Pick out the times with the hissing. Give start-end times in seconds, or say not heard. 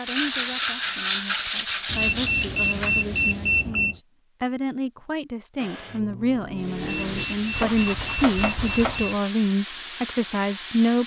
0.0-3.7, 6.6-11.0.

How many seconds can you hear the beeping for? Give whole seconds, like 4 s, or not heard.
4 s.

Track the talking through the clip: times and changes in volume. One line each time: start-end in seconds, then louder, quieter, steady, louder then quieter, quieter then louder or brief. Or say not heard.
0.0-11.0 louder.